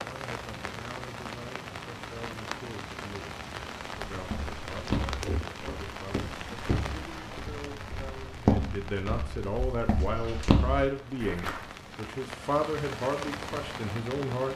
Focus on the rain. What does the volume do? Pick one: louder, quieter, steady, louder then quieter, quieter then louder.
quieter then louder.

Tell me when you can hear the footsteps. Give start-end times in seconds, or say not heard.
4.1-11.7.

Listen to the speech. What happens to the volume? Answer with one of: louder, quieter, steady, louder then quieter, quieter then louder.
louder.